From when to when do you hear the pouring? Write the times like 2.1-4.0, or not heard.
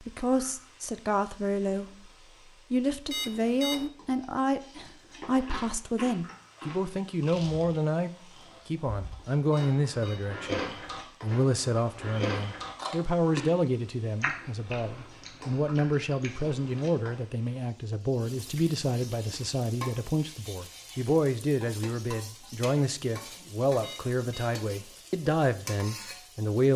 not heard.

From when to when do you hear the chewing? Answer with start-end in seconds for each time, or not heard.
5.2-16.9.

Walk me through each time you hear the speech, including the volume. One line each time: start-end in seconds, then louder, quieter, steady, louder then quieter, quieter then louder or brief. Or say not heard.
0.0-1.9 brief
2.7-10.6 steady
11.2-26.7 steady.